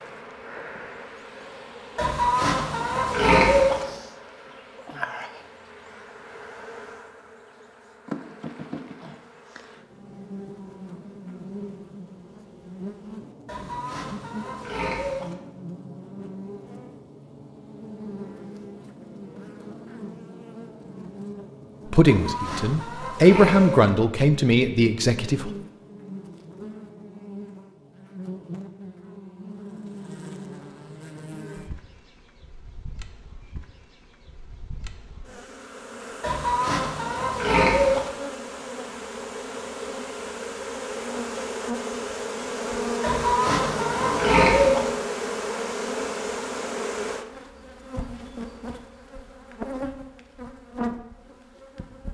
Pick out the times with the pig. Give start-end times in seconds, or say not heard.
1.9-3.9, 13.4-15.3, 22.1-23.9, 36.2-38.1, 43.0-44.9.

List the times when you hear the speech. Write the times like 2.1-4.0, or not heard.
21.9-25.5.